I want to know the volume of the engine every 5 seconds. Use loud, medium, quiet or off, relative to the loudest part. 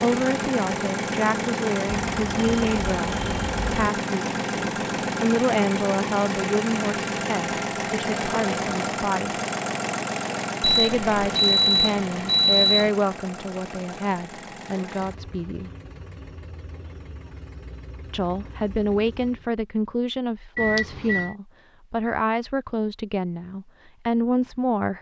loud, loud, medium, quiet, off.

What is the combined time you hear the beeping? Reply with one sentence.
You can hear the beeping for 5 seconds altogether.